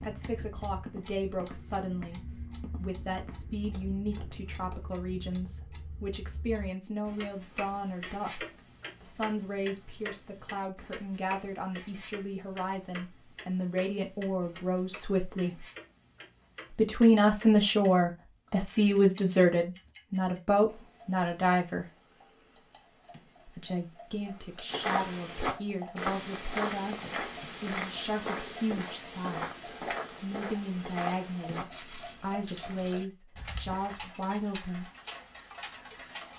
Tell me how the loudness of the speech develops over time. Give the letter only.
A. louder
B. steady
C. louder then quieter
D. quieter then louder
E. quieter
C.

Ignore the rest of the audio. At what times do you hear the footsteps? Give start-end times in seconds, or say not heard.
0.0-5.0, 24.6-34.1.